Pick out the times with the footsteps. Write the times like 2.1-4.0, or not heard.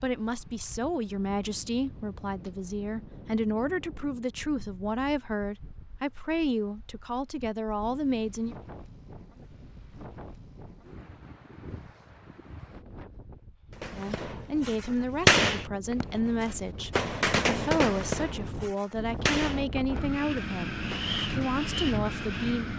not heard.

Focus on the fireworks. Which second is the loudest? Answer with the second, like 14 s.
15 s.